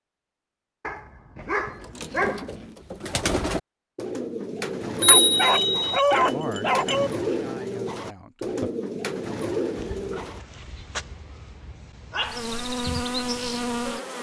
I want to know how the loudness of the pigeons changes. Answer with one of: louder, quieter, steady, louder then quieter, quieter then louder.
steady.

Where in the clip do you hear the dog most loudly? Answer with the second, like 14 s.
6 s.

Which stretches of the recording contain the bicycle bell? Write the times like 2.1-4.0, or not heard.
5.0-6.0.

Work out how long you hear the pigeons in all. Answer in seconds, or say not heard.
9 s.